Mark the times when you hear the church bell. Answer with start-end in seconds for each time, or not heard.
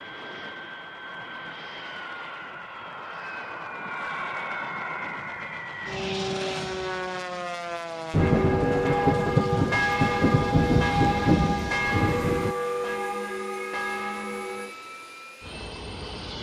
8.2-14.8.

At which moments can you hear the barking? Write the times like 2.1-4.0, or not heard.
not heard.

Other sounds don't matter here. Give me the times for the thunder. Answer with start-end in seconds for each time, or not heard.
8.1-12.6.